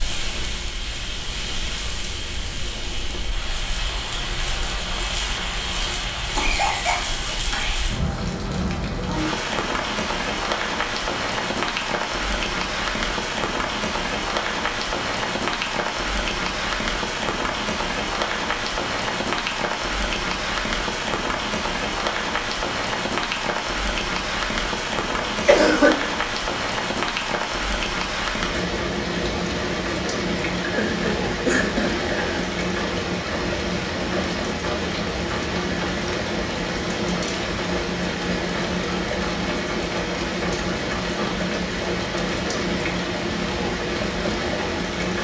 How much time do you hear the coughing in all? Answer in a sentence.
The coughing can be heard for 4 seconds in total.